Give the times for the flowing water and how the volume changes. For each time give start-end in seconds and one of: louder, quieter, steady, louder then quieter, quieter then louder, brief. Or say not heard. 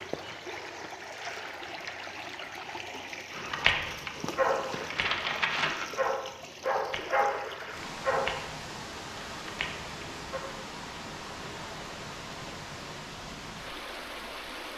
0.0-14.7 steady.